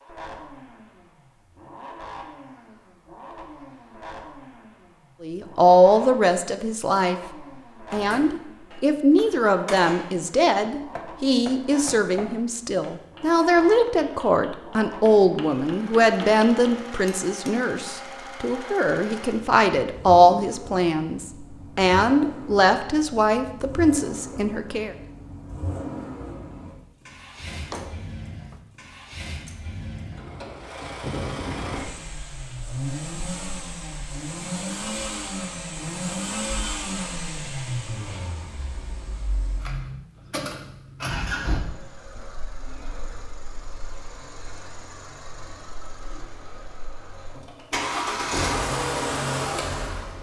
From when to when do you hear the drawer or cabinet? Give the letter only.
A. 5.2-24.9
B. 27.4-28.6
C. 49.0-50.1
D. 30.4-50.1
B.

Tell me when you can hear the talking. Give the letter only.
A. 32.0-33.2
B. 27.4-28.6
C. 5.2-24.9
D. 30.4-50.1
C.